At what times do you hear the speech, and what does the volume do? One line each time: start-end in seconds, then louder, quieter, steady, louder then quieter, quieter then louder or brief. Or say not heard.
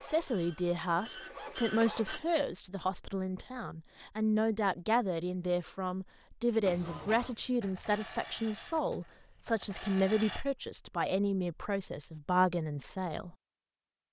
0.0-13.3 steady.